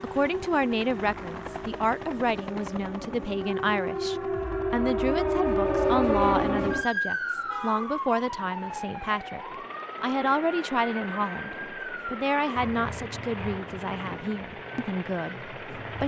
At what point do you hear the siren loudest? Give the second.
6 s.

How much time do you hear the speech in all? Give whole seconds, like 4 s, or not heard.
16 s.